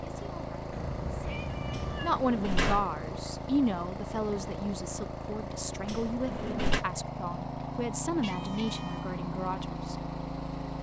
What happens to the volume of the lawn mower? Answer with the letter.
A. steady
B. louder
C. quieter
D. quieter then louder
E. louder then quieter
A.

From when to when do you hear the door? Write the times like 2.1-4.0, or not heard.
1.7-2.9, 5.8-6.8.